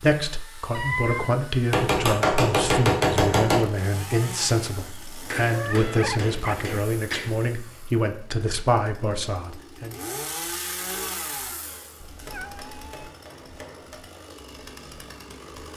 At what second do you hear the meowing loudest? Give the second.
1 s.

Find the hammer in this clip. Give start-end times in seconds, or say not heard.
1.7-3.6, 5.3-7.3, 12.2-14.1.